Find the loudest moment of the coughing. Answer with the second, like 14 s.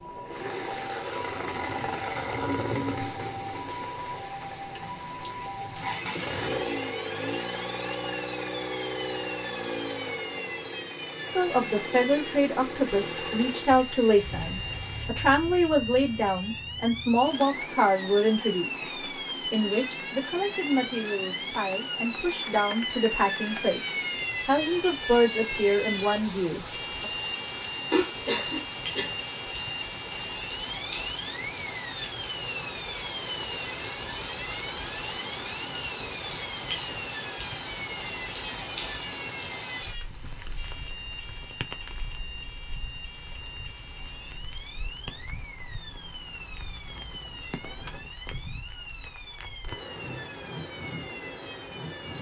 28 s.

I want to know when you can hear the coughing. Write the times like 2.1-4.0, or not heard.
27.9-29.1.